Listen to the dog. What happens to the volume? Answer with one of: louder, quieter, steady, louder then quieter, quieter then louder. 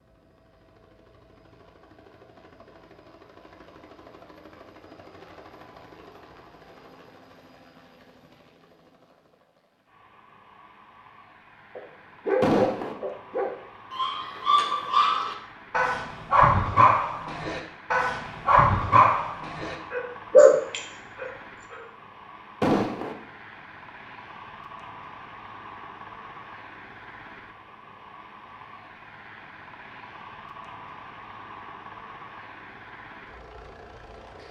louder.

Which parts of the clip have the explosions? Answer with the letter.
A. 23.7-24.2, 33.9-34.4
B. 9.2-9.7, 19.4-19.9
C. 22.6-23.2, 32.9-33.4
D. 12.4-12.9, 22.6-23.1
D.